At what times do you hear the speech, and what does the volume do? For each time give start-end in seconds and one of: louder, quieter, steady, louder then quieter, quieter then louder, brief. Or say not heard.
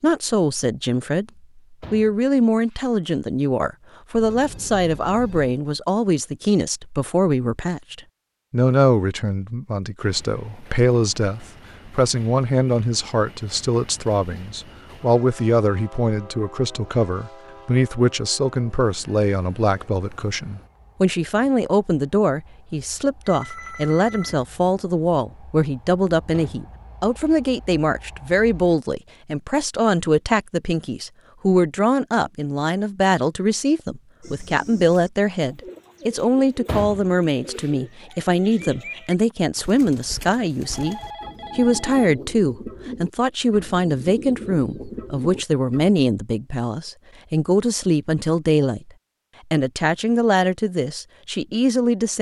0.0-48.9 steady
49.5-52.1 brief.